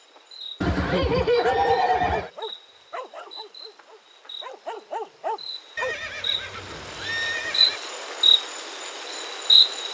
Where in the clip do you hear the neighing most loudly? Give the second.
1 s.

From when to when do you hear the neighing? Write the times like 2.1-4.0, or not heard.
0.6-2.3, 5.8-7.8.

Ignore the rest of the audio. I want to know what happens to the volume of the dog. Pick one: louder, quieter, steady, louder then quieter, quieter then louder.
quieter then louder.